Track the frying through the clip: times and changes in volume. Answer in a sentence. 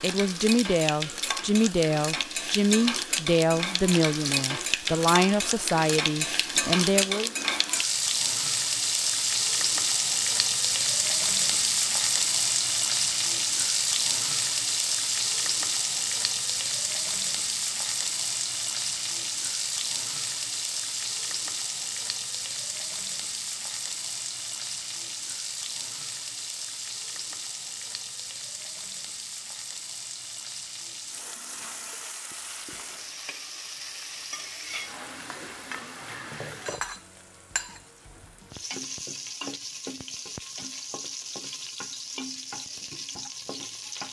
The frying can be heard from 0.0 to 44.0 s, getting quieter.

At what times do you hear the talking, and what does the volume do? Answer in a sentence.
You can hear the talking from 0.0 to 7.3 s, at a steady volume.